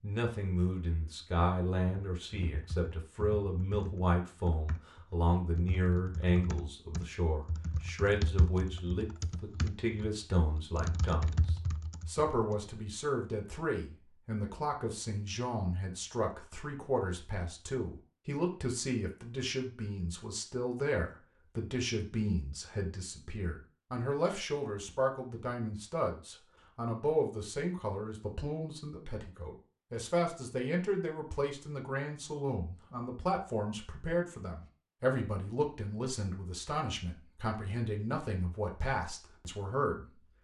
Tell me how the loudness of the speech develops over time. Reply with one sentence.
The volume of the speech stays about the same.